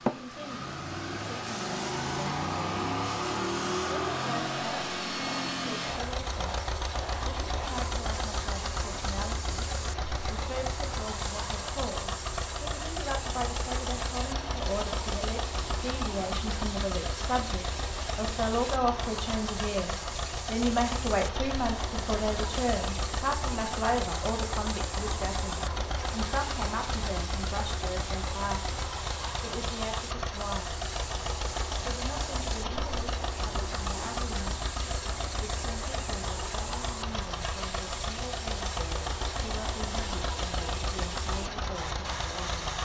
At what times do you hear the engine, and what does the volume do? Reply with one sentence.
You can hear the engine from 0.0 to 42.7 s, at a steady volume.